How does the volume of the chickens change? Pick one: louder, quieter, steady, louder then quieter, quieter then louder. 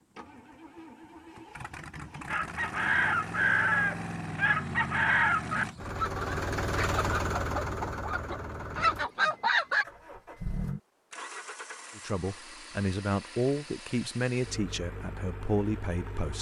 quieter then louder.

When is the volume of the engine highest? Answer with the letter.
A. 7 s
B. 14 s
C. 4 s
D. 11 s
A.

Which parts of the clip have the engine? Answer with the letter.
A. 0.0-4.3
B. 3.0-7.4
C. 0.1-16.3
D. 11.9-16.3
C.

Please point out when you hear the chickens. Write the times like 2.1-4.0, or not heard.
2.2-9.8.